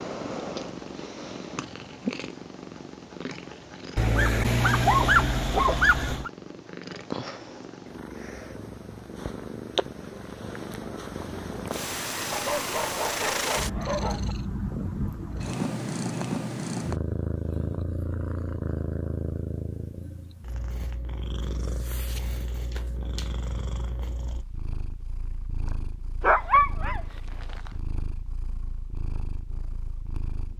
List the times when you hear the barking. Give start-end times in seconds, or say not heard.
4.0-6.3, 12.3-14.3, 26.2-27.6.